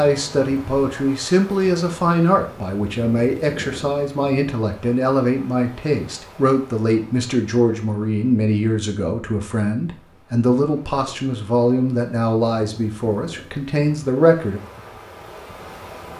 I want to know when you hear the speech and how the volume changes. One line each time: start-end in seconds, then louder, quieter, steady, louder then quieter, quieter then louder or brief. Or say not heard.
0.0-14.6 steady.